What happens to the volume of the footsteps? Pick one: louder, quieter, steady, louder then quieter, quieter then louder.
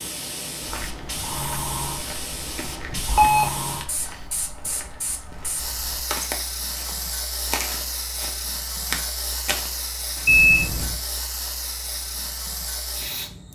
louder.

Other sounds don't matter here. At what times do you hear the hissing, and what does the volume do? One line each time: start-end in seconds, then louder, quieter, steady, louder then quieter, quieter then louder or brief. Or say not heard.
0.0-13.5 steady.